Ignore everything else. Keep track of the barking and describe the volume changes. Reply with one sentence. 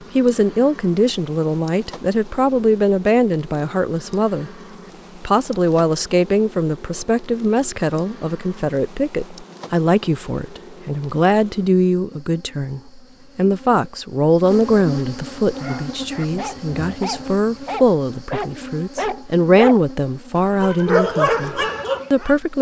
The volume of the barking goes up.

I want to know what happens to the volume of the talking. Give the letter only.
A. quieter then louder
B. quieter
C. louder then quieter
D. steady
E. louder
D.